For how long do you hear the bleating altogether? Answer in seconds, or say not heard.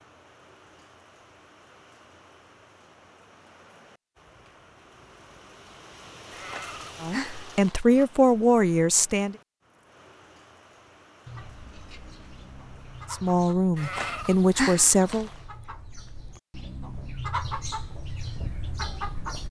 3 s.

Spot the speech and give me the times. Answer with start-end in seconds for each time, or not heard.
7.0-9.3, 13.1-15.3.